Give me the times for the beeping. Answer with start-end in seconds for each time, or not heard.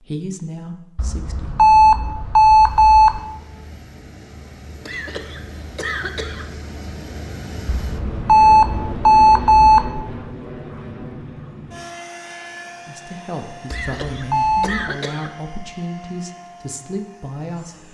0.9-3.2, 7.7-9.9, 13.7-14.9.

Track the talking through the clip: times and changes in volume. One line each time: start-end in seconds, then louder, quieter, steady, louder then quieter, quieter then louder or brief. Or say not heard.
0.0-1.6 brief
12.8-17.8 steady.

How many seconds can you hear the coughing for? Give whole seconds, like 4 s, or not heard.
3 s.